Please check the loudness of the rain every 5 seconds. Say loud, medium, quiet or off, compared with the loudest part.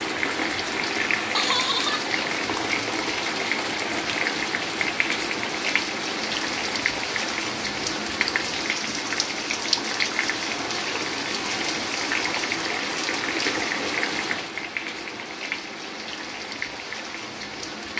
loud, loud, loud, medium.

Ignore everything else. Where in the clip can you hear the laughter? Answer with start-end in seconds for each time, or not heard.
1.3-2.1.